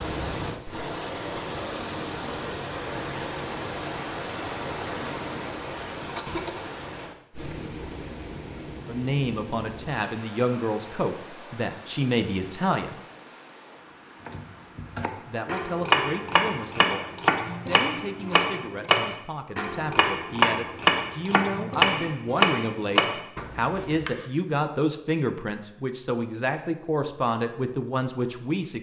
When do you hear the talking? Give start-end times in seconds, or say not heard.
8.8-13.0, 15.2-28.7.